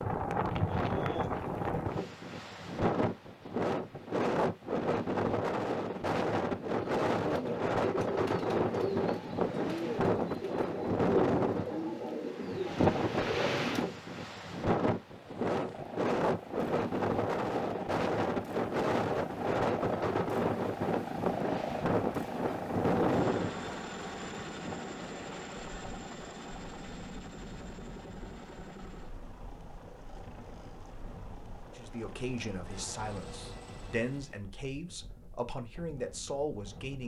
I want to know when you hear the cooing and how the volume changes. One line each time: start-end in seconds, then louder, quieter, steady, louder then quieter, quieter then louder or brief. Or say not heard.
6.6-13.9 steady.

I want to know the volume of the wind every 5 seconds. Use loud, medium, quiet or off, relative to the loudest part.
loud, loud, loud, loud, loud, quiet, quiet, quiet.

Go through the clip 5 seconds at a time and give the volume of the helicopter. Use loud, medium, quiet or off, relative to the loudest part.
off, off, off, loud, loud, medium, medium, off.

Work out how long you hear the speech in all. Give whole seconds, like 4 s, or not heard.
5 s.